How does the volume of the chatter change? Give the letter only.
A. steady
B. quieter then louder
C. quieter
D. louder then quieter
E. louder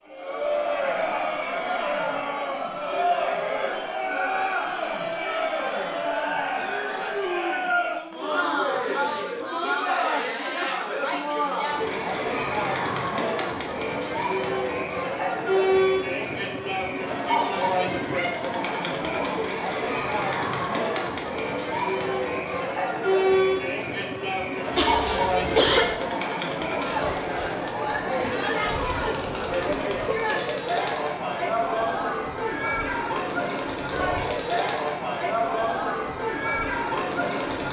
A.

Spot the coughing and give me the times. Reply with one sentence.
You can hear the coughing from 24.7 to 25.9 s.